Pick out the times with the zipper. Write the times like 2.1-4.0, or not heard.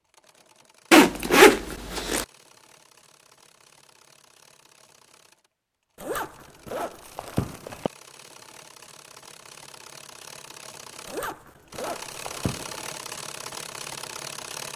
0.9-2.2, 6.0-7.9, 11.1-12.8.